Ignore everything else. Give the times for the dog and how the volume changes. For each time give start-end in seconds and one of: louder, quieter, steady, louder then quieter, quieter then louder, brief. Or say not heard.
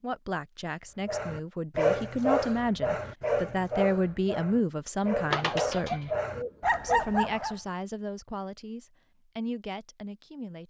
1.1-7.5 quieter then louder.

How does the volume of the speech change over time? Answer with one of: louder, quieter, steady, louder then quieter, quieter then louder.
louder then quieter.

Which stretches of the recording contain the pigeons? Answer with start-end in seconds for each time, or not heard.
5.3-7.0.